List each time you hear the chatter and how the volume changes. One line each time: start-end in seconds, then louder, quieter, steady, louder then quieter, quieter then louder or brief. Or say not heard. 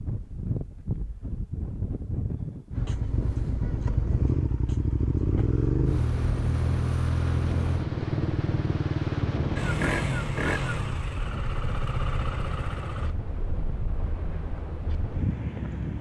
not heard.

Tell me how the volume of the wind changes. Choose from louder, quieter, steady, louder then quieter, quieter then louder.
steady.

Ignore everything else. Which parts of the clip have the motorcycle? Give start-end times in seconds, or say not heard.
2.7-13.2.